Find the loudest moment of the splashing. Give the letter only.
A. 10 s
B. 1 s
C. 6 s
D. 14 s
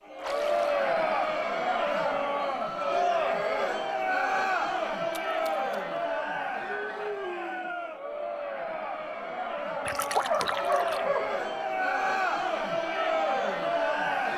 A.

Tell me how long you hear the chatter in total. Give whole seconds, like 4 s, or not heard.
14 s.